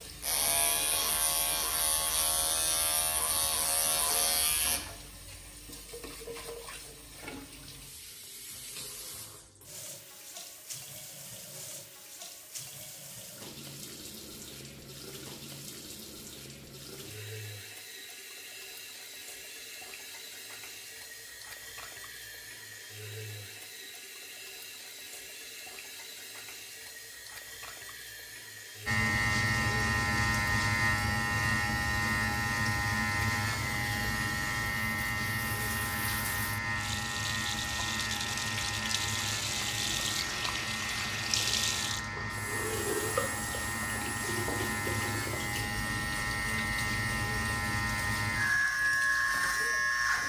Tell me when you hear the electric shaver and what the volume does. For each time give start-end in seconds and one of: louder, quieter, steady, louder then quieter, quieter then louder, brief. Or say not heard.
0.1-4.9 steady
28.9-50.2 quieter then louder.